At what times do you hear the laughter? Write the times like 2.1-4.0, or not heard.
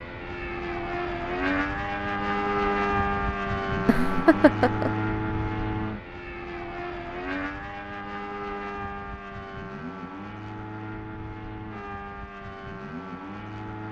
3.9-4.9.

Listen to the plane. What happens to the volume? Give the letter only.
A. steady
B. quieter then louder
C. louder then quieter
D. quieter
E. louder
D.